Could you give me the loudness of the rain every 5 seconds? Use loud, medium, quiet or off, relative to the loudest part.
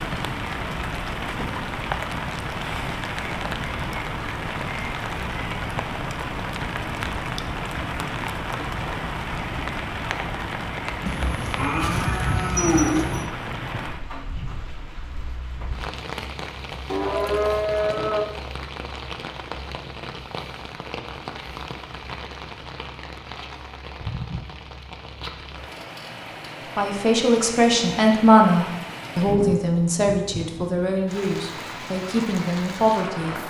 loud, loud, loud, medium, medium, medium, medium.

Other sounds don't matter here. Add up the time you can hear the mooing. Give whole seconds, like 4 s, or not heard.
4 s.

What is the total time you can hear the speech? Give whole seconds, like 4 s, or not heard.
7 s.